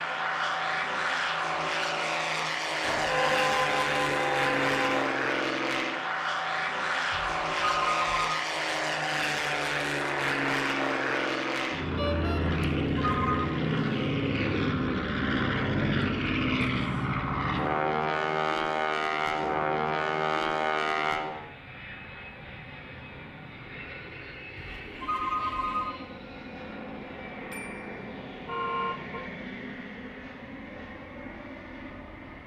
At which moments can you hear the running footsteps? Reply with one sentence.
The running footsteps can't be heard in this clip.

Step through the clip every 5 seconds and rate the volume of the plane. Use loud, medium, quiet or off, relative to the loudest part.
loud, loud, loud, loud, medium, quiet, quiet.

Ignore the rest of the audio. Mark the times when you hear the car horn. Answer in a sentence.
You can hear the car horn from 2.8 to 5.0 s, from 11.9 to 12.4 s and from 27.5 to 29.2 s.